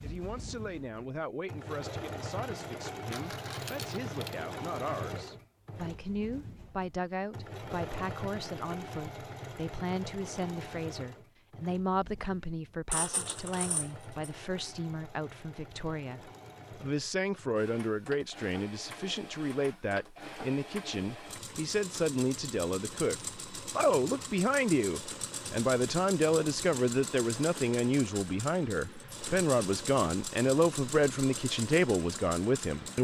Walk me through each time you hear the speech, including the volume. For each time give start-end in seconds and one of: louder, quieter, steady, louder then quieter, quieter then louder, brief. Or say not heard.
0.0-32.9 louder.